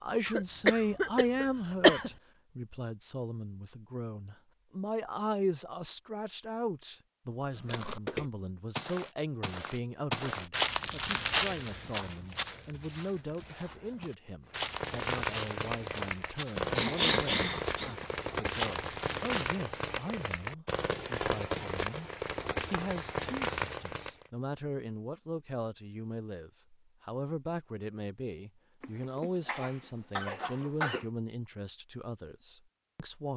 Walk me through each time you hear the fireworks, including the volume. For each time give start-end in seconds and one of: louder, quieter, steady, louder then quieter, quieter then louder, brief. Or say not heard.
14.5-24.3 steady.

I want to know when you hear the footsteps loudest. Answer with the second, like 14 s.
11 s.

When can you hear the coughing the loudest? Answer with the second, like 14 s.
2 s.